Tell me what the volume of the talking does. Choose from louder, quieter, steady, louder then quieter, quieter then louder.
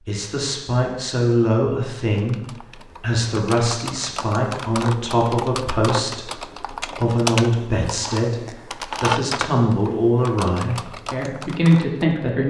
steady.